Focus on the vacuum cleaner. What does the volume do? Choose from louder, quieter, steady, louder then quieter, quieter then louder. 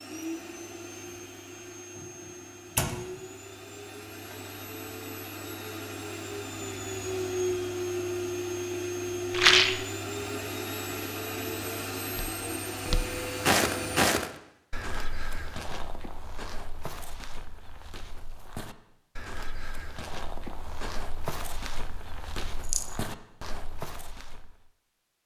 louder.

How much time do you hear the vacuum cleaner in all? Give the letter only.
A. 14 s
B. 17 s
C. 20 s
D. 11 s
A.